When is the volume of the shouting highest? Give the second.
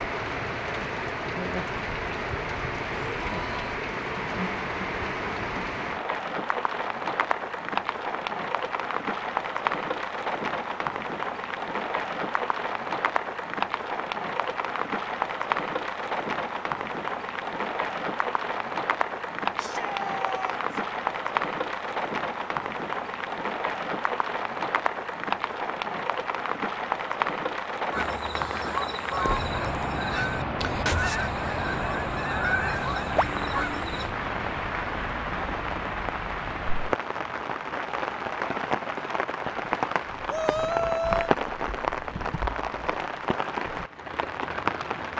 41 s.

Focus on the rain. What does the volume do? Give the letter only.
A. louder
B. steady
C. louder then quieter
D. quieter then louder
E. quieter
B.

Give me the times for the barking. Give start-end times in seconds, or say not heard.
not heard.